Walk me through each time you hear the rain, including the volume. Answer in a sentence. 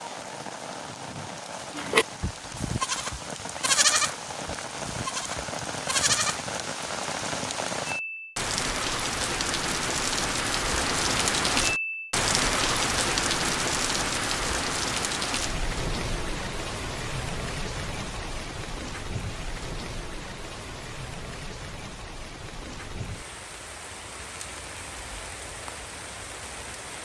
The rain can be heard from 0.0 to 27.0 s, getting louder then quieter.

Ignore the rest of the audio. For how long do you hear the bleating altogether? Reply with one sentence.
The bleating can be heard for 5 seconds in total.